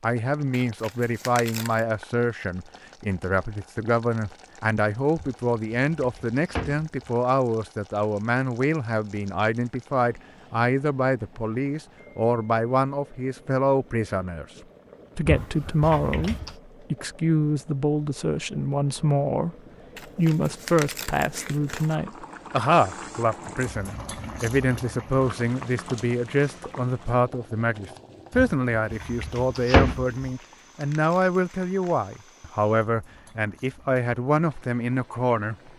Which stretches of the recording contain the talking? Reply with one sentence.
You can hear the talking from 0.0 to 14.4 s, from 15.2 to 19.6 s and from 20.1 to 35.5 s.